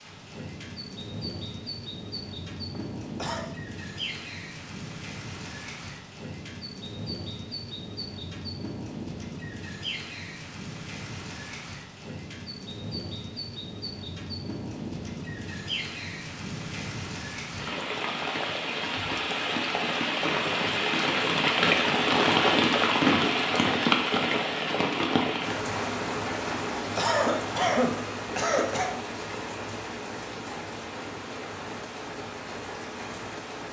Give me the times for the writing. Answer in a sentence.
You can't hear the writing here.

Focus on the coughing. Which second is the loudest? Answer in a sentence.
The loudest moment of the coughing is at 28 seconds.